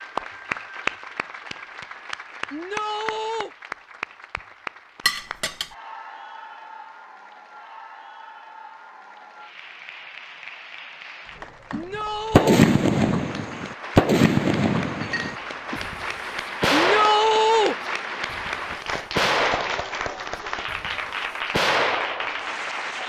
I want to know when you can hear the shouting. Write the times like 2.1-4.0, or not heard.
2.5-3.5, 11.7-12.7, 16.7-17.8.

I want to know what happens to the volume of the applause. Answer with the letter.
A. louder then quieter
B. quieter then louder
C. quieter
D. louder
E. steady
B.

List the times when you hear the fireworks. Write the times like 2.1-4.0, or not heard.
12.3-22.6.